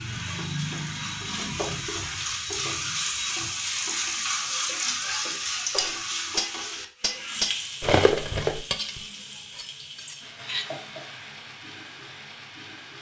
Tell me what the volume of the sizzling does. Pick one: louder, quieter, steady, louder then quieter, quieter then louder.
quieter.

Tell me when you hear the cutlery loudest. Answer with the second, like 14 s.
8 s.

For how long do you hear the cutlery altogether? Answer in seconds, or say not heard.
5 s.